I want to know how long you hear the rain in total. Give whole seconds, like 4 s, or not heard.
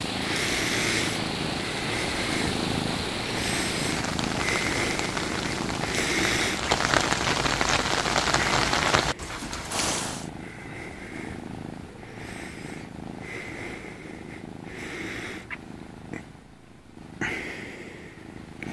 10 s.